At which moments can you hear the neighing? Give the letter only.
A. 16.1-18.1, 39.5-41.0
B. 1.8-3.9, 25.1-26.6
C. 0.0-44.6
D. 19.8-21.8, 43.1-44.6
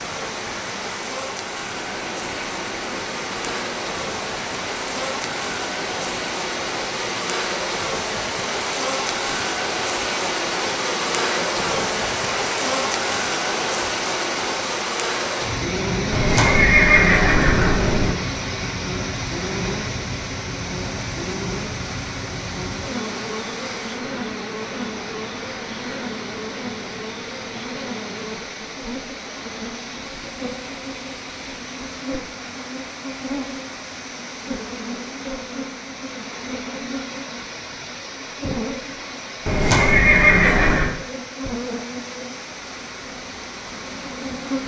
A.